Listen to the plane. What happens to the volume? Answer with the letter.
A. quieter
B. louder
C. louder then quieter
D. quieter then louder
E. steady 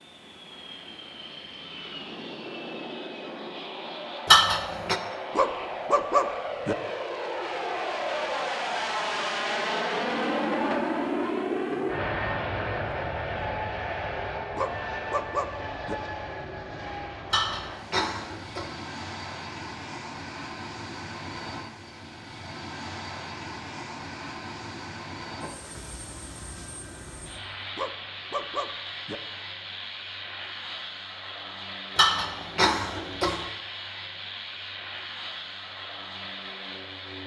C.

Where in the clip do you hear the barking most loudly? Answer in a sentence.
The loudest moment of the barking is at 6 seconds.